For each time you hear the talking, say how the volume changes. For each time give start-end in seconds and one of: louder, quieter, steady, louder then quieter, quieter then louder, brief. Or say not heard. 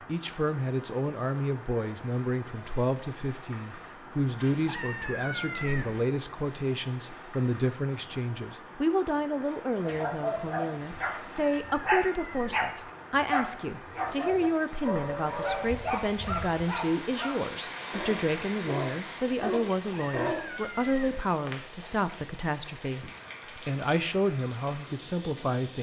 0.1-25.7 steady.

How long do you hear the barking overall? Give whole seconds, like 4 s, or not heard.
11 s.